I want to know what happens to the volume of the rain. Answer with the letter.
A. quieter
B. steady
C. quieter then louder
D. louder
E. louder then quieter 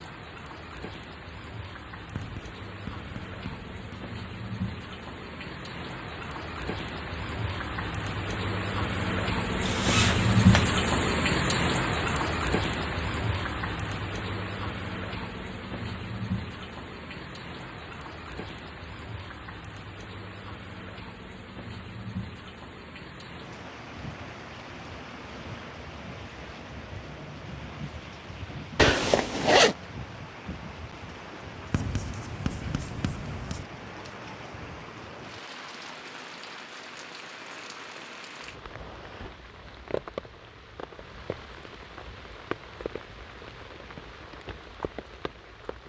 E.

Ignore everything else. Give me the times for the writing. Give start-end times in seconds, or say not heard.
2.1-4.0, 31.7-33.6.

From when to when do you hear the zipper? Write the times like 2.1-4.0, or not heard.
9.6-10.7, 28.8-29.8.